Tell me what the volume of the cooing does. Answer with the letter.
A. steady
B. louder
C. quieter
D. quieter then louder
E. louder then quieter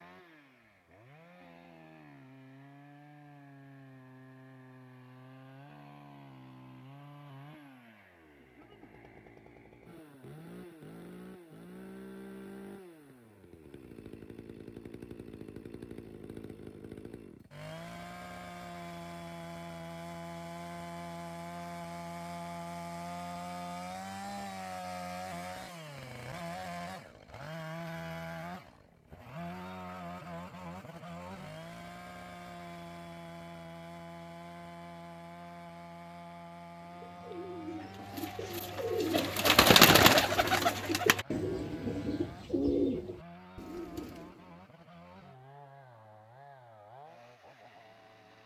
E.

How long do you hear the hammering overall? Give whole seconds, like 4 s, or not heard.
not heard.